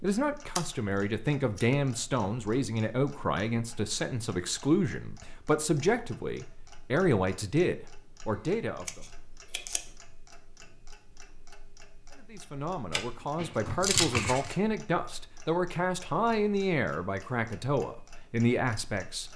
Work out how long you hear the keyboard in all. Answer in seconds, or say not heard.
not heard.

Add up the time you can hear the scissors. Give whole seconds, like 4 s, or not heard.
4 s.